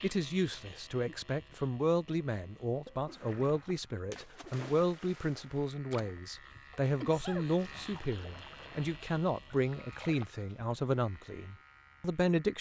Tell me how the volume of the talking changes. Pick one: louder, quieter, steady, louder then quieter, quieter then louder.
steady.